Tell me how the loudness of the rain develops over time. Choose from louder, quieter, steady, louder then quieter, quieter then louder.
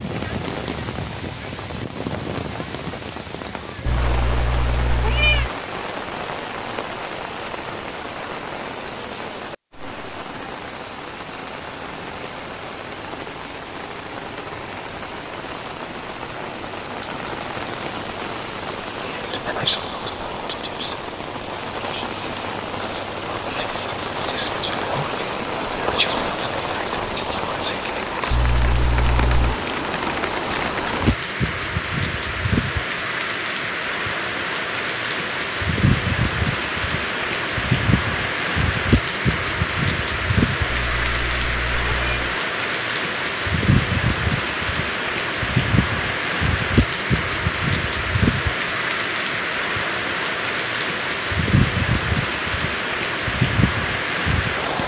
louder.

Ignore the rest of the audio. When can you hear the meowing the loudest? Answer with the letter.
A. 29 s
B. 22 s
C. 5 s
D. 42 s
C.